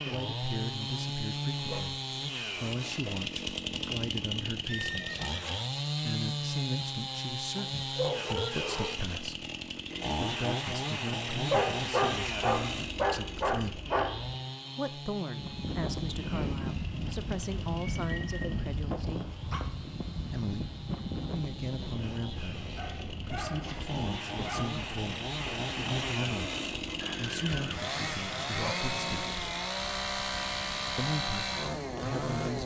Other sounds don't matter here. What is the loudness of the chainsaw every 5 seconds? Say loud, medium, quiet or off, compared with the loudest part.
loud, loud, loud, quiet, medium, loud, loud.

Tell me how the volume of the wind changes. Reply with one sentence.
The volume of the wind goes down.